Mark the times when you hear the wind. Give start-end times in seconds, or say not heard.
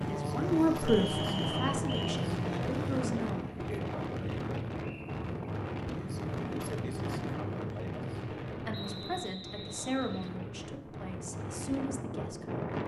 0.0-12.8.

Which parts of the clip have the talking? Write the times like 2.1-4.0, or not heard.
0.0-3.5, 8.6-12.7.